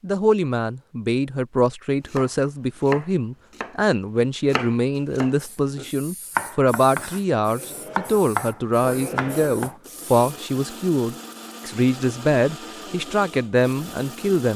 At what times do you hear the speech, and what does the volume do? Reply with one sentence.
The speech can be heard from 0.0 to 14.5 s, at a steady volume.